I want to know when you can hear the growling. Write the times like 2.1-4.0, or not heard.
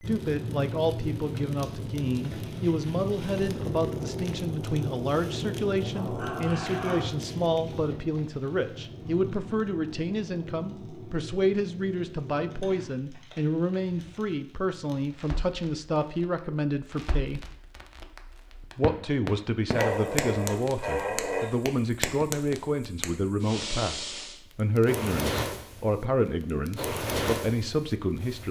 5.9-7.1, 19.7-21.6.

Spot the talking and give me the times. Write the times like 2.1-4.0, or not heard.
0.0-17.4, 18.8-28.4.